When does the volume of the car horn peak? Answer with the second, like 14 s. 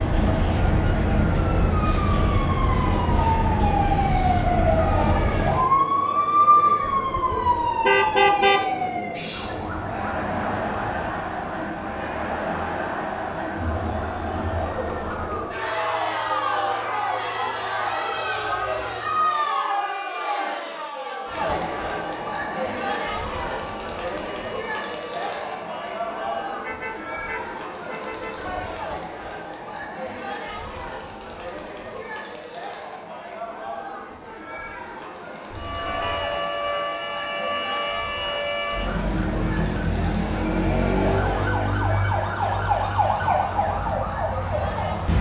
8 s.